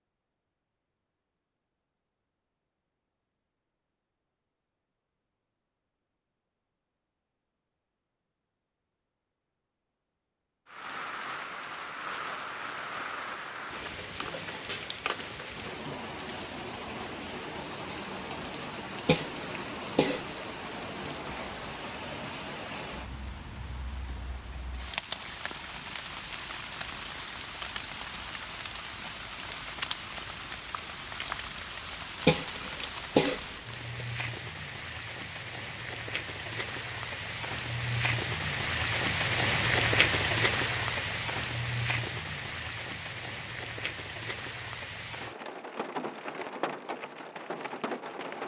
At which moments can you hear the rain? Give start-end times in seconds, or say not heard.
10.7-48.4.